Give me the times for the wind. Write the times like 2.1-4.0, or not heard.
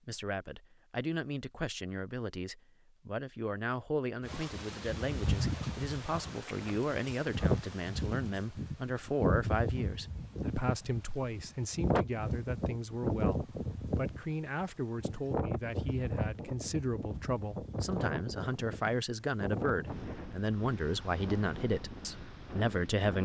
4.2-23.2.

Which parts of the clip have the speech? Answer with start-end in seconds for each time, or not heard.
0.1-23.2.